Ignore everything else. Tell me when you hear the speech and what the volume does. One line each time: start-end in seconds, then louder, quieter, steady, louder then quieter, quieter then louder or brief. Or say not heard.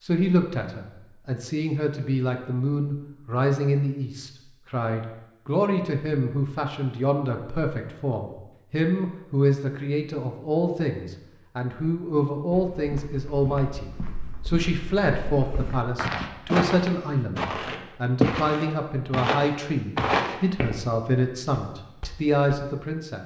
0.0-23.2 steady.